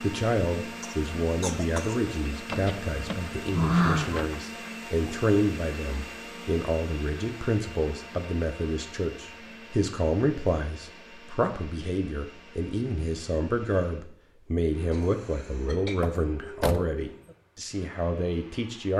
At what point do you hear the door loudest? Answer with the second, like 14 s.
4 s.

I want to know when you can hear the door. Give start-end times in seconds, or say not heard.
2.5-4.4, 16.0-16.9.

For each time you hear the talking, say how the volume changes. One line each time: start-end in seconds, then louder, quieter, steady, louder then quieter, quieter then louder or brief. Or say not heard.
0.0-18.9 steady.